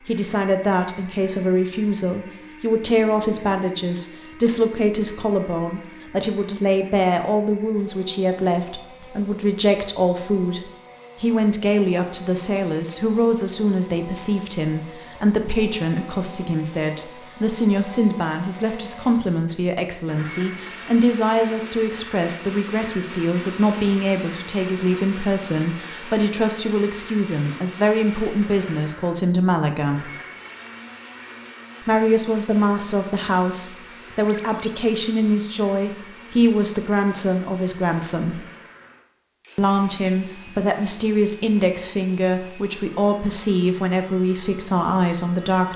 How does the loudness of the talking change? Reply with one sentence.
The volume of the talking stays about the same.